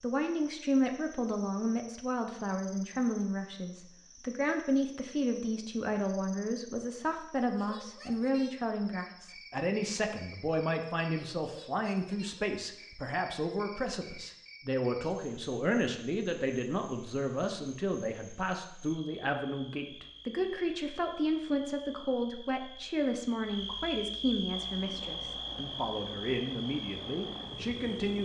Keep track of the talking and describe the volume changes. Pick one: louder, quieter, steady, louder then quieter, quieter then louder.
steady.